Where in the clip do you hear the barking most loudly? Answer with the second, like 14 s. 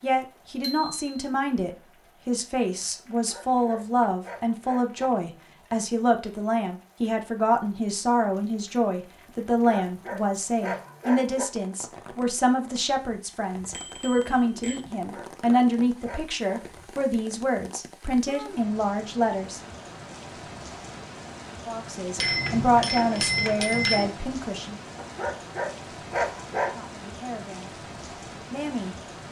26 s.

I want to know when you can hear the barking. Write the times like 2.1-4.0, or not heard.
3.1-5.1, 9.6-11.4, 14.9-16.5, 24.9-26.8.